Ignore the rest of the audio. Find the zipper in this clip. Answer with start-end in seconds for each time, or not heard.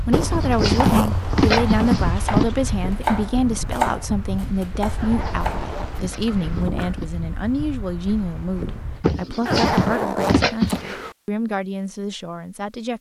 0.1-2.1, 5.0-6.7, 9.4-11.2.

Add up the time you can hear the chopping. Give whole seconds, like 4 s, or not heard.
6 s.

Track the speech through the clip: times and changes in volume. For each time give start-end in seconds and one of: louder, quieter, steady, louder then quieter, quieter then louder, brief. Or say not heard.
0.1-12.9 quieter.